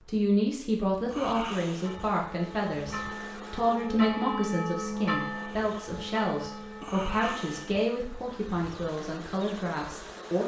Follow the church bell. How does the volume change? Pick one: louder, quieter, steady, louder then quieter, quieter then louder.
louder then quieter.